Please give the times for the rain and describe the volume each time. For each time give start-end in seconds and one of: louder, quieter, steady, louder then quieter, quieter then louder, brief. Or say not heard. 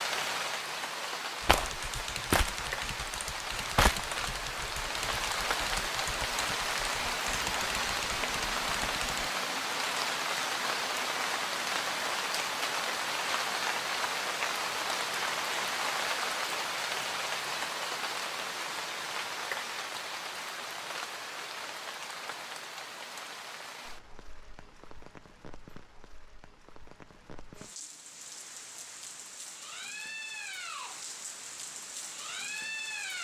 0.0-33.1 quieter.